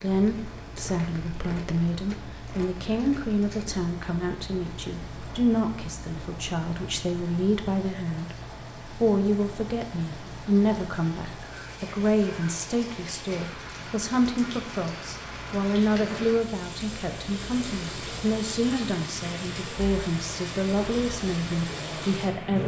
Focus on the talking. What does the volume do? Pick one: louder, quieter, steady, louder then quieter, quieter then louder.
steady.